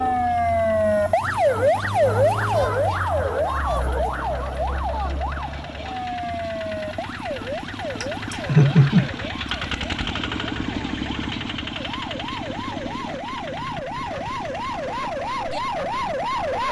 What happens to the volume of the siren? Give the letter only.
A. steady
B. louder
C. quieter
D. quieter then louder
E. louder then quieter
D.